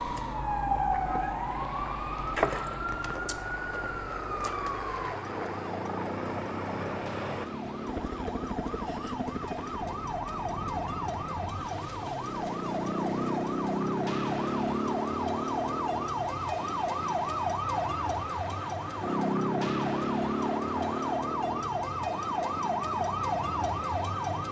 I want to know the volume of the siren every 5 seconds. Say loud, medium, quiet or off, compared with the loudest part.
loud, medium, loud, loud, loud.